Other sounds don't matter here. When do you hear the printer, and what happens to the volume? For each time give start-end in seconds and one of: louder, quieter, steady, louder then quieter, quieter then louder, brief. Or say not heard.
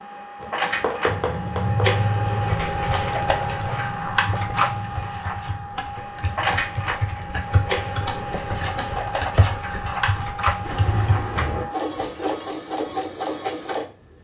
0.0-13.9 steady.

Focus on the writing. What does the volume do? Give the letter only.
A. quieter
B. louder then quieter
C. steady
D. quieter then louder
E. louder
D.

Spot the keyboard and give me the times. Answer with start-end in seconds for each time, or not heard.
1.1-11.7.